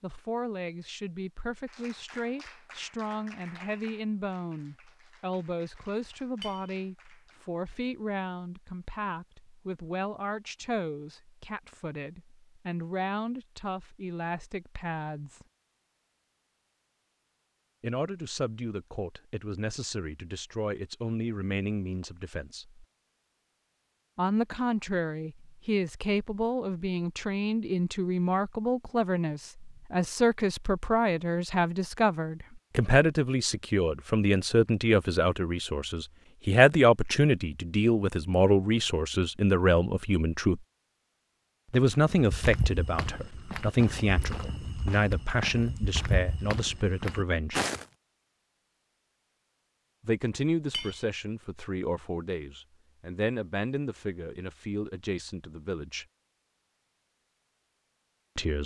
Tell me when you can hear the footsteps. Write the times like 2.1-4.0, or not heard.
42.1-47.9.